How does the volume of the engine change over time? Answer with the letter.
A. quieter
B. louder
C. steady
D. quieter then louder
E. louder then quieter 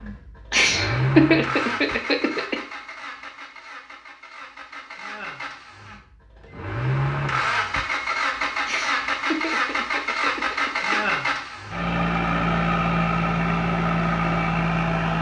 D.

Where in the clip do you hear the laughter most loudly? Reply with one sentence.
The loudest moment of the laughter is at 1 second.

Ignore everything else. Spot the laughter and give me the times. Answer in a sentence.
The laughter can be heard from 0.5 to 2.5 s and from 8.7 to 11.1 s.